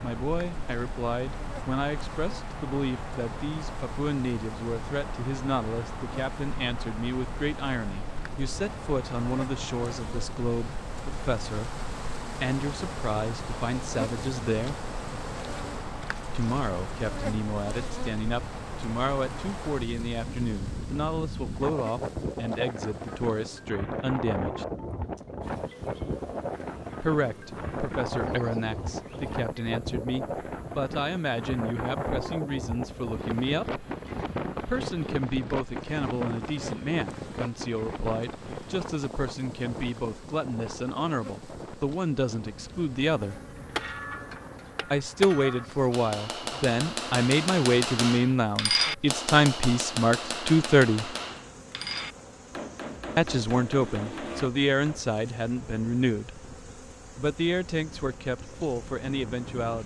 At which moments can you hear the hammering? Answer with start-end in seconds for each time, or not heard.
43.3-55.1.